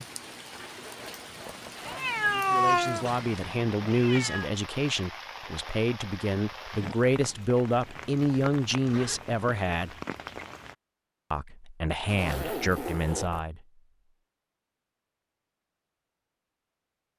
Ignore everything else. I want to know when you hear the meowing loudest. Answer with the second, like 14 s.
3 s.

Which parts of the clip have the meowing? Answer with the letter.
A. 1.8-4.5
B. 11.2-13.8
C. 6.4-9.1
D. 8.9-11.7
A.